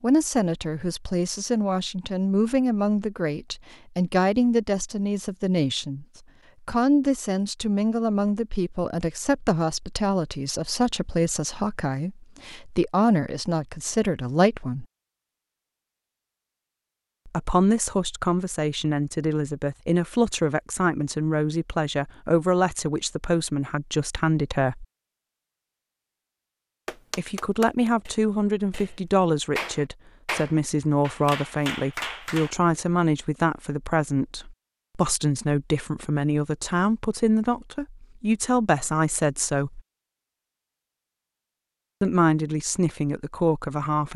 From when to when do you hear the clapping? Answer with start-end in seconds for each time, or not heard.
26.9-32.5.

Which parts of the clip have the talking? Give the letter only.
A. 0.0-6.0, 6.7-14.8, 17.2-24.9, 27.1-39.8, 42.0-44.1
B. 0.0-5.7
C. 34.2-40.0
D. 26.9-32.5
A.